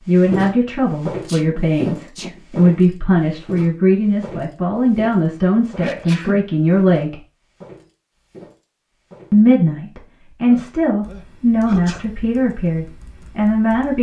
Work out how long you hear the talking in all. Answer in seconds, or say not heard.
12 s.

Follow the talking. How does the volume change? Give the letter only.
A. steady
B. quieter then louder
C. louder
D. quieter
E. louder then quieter
A.